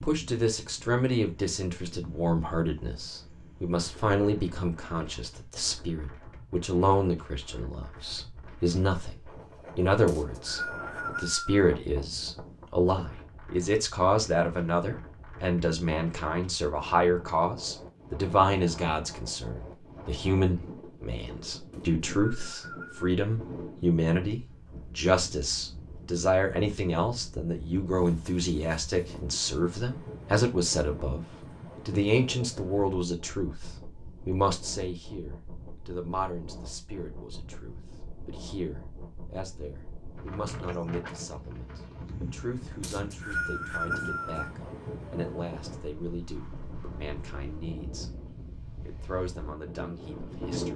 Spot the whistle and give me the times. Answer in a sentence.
You can hear the whistle from 10.1 to 11.4 s, from 21.7 to 23.1 s and from 42.8 to 44.5 s.